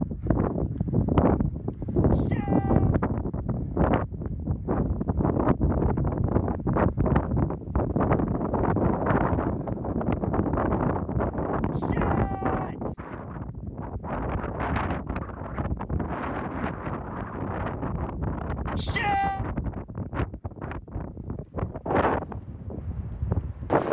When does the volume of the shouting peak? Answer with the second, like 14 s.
19 s.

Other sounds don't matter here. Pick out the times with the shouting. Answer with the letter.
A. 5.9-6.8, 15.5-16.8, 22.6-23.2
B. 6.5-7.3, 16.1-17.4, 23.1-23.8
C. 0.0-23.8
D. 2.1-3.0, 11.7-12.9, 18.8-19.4
D.